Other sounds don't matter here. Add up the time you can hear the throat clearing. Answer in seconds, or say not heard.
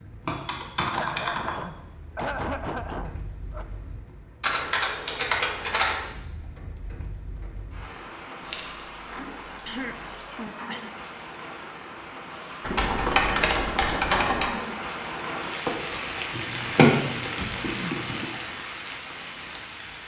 5 s.